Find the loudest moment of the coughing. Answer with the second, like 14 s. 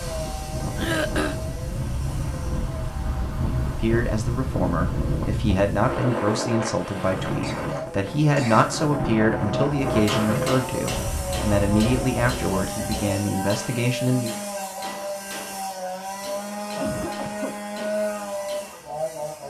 1 s.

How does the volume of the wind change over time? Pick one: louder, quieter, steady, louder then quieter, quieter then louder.
steady.